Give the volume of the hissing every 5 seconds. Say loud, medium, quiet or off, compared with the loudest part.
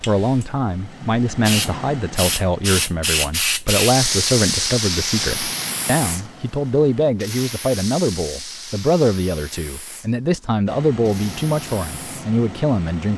loud, medium, quiet.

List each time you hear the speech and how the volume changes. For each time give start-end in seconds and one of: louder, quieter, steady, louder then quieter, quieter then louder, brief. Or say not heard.
0.0-13.1 steady.